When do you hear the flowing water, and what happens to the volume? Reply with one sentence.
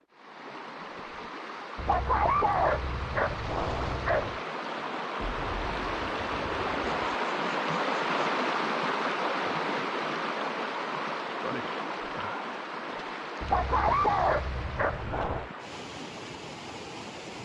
You can hear the flowing water from 0.0 to 17.4 s, getting louder then quieter.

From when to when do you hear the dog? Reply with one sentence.
You can hear the dog from 1.8 to 4.4 s and from 13.4 to 15.5 s.